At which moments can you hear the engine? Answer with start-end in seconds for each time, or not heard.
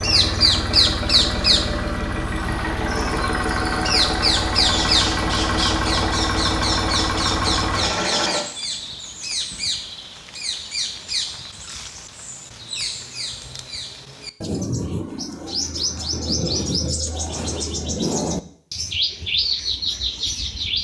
0.0-8.4.